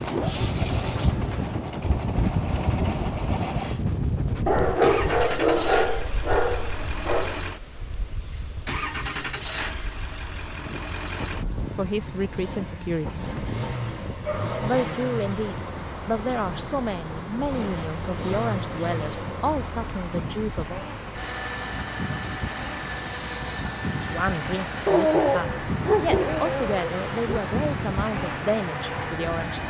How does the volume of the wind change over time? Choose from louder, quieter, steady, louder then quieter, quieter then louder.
quieter then louder.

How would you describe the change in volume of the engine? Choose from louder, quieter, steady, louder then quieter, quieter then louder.
steady.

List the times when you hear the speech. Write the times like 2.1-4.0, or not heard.
11.8-13.2, 14.4-20.9, 24.0-29.6.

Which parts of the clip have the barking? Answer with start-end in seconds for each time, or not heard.
4.5-7.4, 14.2-14.7, 24.9-27.4.